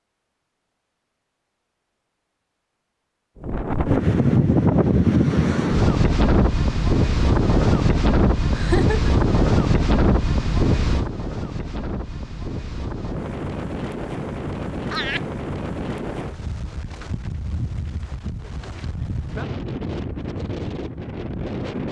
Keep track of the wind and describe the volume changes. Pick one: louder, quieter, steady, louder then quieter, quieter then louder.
quieter.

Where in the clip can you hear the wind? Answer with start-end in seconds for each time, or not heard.
3.4-21.8.